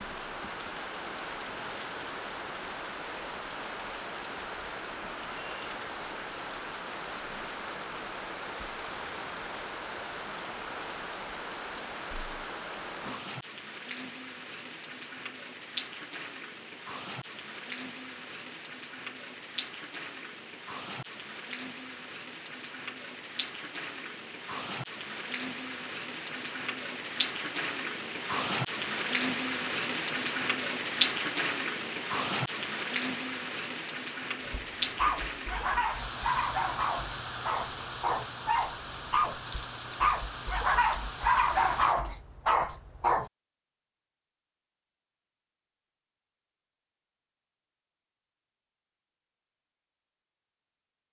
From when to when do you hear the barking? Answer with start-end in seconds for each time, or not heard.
34.5-43.3.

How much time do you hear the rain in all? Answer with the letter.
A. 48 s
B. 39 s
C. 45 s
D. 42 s
D.